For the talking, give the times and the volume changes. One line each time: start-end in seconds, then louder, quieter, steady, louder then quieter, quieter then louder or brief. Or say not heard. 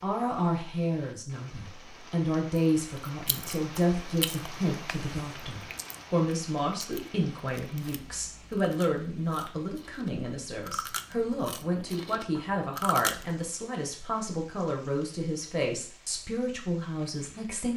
0.0-17.7 steady.